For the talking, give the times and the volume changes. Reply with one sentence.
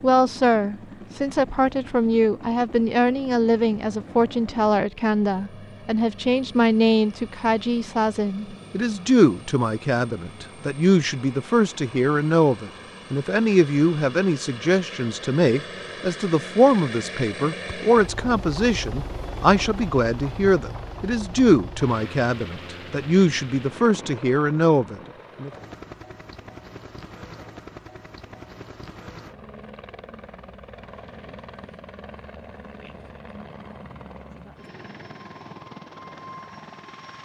You can hear the talking from 0.0 to 25.5 s, at a steady volume.